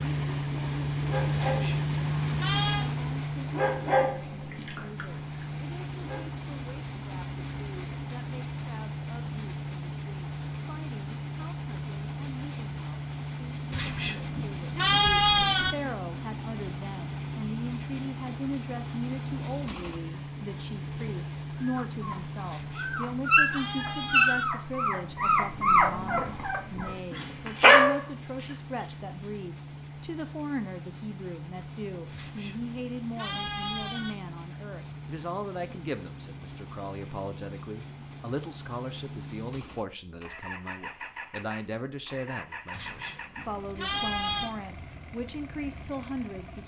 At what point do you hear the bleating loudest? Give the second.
15 s.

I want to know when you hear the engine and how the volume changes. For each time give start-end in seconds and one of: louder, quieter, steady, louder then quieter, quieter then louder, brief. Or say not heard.
0.0-46.6 quieter.